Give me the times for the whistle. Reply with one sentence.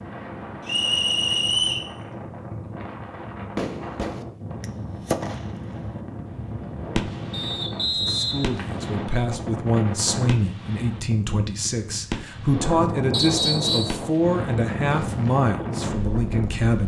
The whistle can be heard from 0.7 to 1.9 s, from 7.3 to 8.7 s and from 13.1 to 14.0 s.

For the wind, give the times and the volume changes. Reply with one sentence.
You can hear the wind from 0.0 to 16.8 s, getting louder.